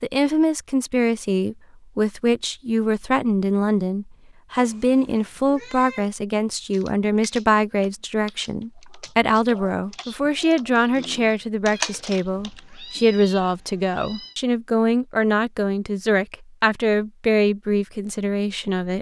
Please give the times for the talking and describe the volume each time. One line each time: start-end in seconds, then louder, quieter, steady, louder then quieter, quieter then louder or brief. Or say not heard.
0.0-18.9 steady.